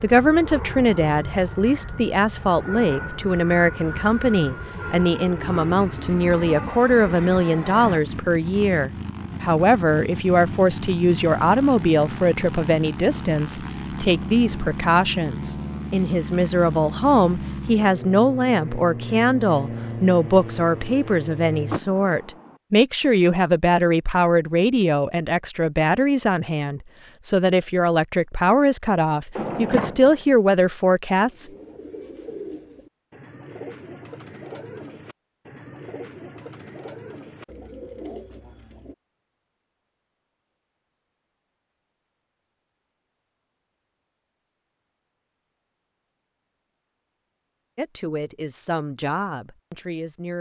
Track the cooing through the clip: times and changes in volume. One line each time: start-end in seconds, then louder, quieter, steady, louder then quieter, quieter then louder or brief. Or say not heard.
31.2-39.0 steady.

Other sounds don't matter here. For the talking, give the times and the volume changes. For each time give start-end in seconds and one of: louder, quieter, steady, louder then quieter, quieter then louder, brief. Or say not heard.
0.0-31.5 steady
47.8-50.3 brief.